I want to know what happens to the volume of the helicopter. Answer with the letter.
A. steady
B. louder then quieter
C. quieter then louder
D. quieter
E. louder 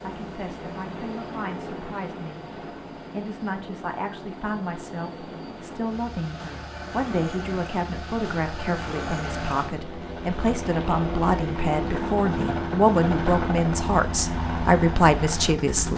E.